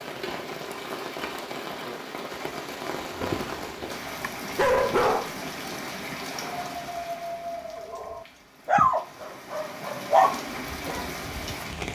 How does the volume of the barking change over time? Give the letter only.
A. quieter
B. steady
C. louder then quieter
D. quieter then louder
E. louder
D.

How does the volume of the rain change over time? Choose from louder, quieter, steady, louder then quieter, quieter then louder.
quieter then louder.